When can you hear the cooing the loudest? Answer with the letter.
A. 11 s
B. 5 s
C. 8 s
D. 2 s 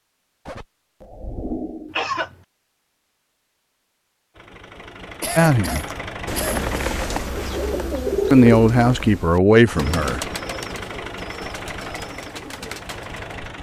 C.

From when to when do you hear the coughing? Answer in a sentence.
The coughing can be heard from 0.5 to 2.4 s, from 5.2 to 6.9 s and from 9.5 to 9.9 s.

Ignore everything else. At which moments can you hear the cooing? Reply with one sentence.
You can hear the cooing from 5.7 to 13.4 s.